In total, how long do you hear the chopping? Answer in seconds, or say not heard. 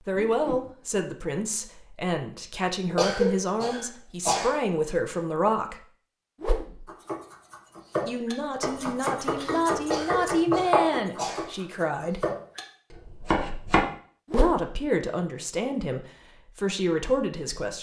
7 s.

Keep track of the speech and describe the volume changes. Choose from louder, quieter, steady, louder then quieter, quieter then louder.
steady.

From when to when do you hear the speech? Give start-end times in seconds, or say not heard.
0.0-5.8, 8.1-12.2, 14.3-17.7.